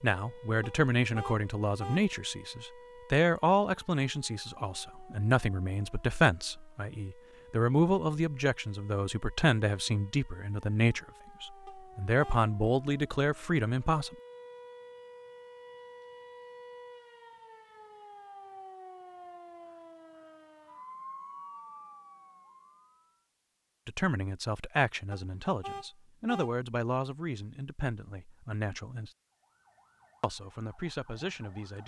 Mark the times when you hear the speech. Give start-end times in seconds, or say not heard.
0.0-14.2, 23.9-29.1, 30.2-31.8.